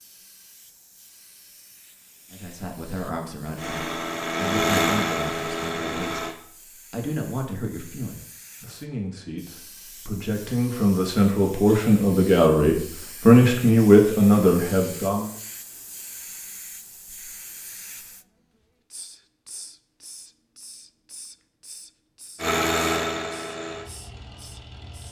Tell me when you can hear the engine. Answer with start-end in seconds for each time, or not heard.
3.5-6.3, 22.4-25.0.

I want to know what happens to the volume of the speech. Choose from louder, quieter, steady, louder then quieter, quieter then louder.
louder.